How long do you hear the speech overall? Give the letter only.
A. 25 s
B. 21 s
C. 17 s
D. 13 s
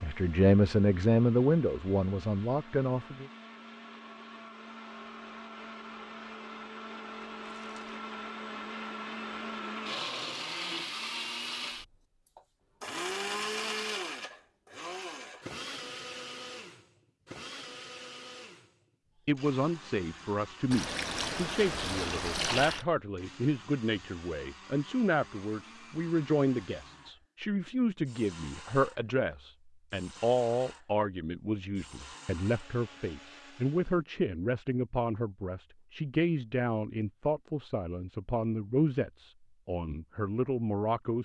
A.